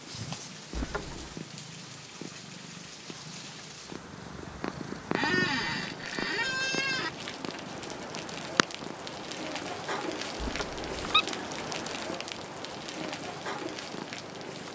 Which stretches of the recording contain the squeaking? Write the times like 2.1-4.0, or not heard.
0.7-1.4, 5.1-7.1, 10.4-11.2.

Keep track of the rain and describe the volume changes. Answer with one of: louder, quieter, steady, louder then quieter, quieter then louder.
louder.